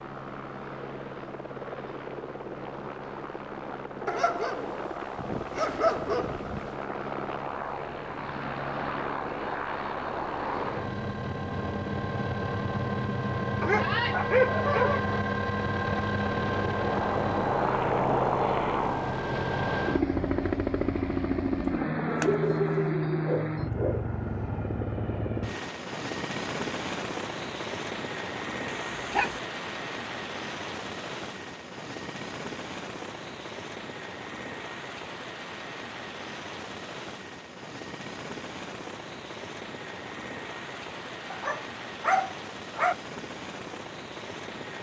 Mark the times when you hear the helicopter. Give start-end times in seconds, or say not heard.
0.0-44.7.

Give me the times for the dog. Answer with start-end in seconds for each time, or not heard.
4.0-6.7, 13.6-15.1, 22.1-24.1, 28.6-29.4, 41.3-43.0.